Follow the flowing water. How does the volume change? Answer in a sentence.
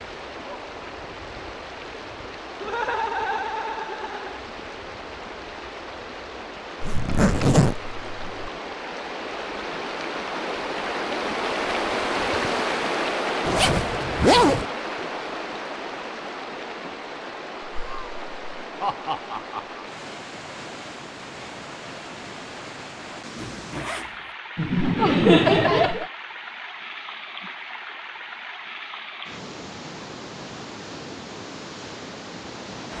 The loudness of the flowing water goes up, then down.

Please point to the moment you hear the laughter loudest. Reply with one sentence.
The volume of the laughter peaks at 25 seconds.